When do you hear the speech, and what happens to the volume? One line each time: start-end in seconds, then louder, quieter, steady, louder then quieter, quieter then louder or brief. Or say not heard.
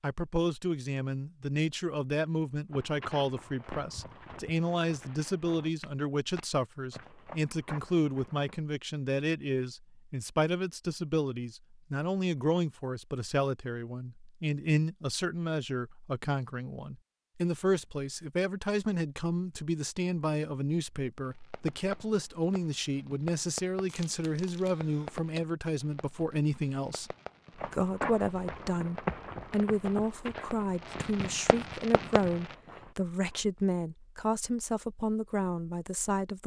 0.0-36.4 steady.